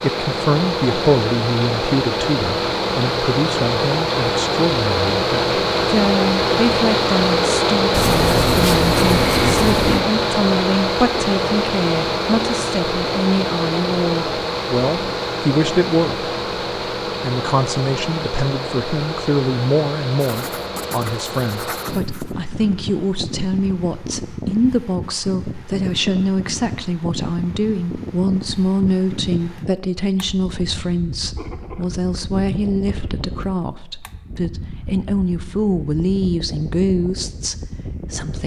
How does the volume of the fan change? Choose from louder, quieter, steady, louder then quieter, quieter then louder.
quieter.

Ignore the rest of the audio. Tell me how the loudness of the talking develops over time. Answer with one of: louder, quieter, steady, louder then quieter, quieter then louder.
steady.